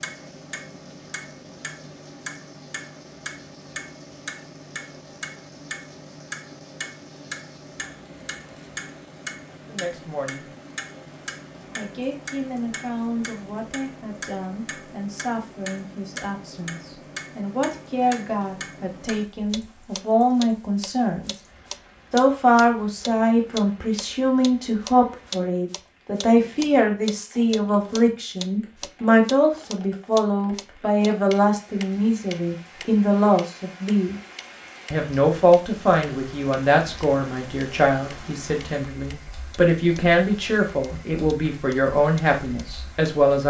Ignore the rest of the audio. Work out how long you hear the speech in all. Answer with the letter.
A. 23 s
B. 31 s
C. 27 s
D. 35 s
B.